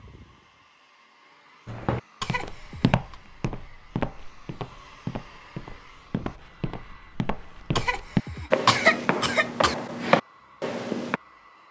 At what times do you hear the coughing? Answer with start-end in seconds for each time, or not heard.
2.2-3.1, 7.8-9.8.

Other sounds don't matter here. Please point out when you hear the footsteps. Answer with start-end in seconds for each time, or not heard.
1.6-11.2.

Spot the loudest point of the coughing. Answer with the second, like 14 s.
9 s.